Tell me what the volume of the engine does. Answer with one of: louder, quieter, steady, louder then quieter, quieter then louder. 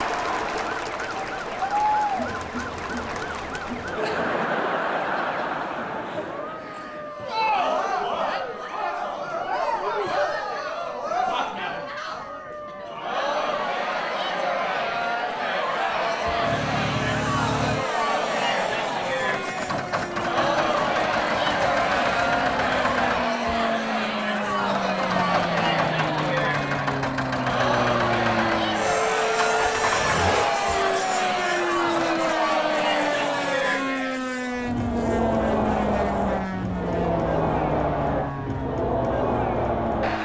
steady.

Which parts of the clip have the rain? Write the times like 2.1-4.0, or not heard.
not heard.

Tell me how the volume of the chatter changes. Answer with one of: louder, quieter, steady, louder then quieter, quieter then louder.
steady.